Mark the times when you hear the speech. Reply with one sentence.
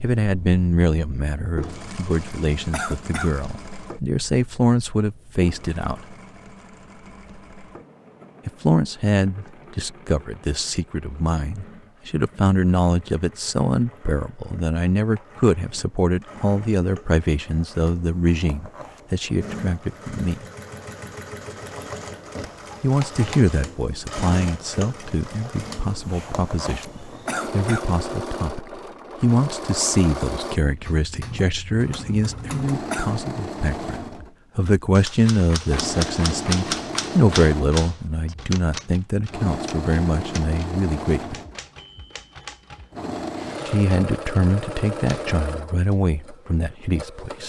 You can hear the speech from 0.0 to 6.0 s, from 8.4 to 20.4 s, from 22.8 to 41.4 s and from 43.6 to 47.4 s.